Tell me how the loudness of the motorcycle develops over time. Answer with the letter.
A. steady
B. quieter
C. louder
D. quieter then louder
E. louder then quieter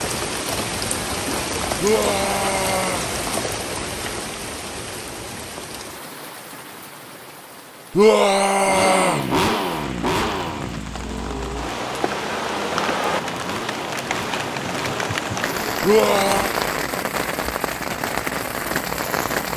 B.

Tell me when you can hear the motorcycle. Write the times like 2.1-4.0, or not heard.
8.6-19.5.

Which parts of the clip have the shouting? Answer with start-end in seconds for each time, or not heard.
1.8-3.1, 8.0-9.2, 15.8-16.6.